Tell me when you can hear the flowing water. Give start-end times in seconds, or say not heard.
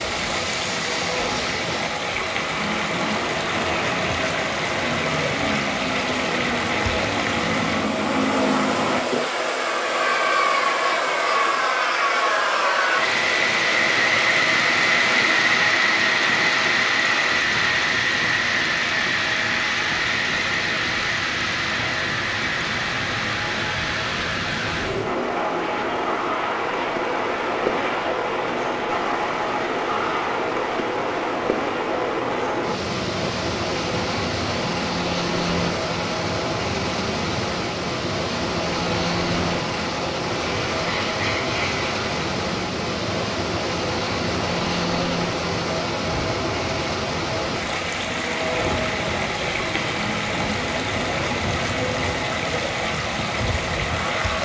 0.0-54.4.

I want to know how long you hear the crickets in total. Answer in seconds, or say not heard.
not heard.